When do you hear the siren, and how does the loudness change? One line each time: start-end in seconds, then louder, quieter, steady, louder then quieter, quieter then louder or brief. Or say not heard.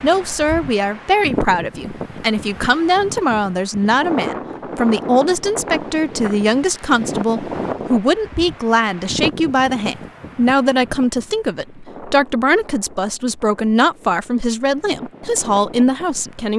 not heard.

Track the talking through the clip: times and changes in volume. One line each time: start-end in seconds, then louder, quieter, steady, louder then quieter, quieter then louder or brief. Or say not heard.
0.0-16.5 steady.